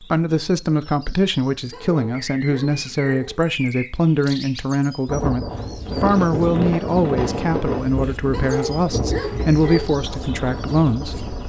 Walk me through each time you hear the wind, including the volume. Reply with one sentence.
You can hear the wind from 5.0 to 11.4 s, getting quieter.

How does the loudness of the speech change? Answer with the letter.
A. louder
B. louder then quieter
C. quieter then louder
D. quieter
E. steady
E.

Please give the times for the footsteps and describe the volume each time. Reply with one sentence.
You can't hear the footsteps here.